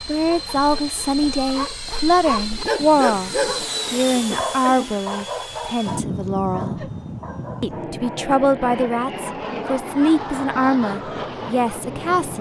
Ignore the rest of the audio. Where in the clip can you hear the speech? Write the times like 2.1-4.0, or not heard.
0.1-6.8, 7.6-12.3.